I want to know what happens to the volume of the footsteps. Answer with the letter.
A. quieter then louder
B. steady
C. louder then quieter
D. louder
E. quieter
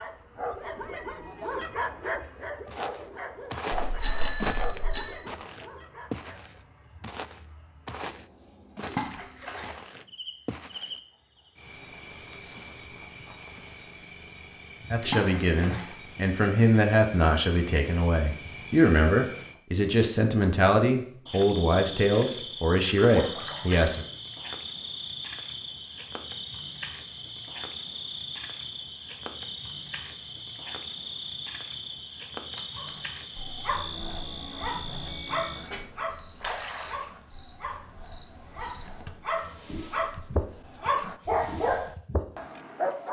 E.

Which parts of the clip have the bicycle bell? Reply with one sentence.
You can hear the bicycle bell from 4.0 to 5.2 s and from 34.5 to 35.9 s.